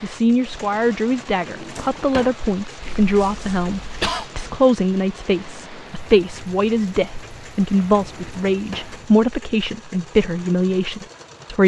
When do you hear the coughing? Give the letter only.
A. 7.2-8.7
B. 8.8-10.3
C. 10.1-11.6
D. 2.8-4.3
D.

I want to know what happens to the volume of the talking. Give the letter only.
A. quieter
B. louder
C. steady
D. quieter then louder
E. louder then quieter
C.